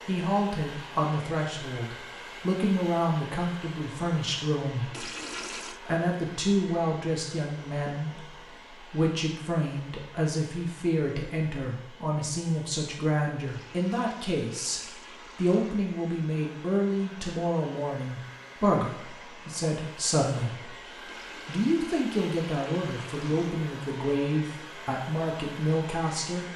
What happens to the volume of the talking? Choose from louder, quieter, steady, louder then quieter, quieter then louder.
steady.